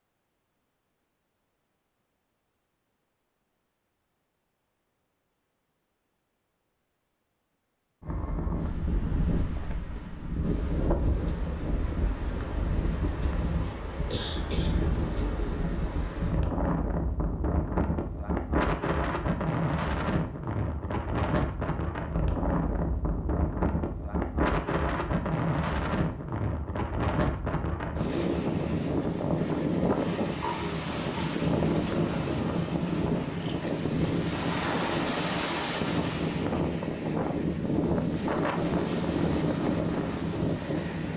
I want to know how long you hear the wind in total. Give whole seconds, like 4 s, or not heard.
33 s.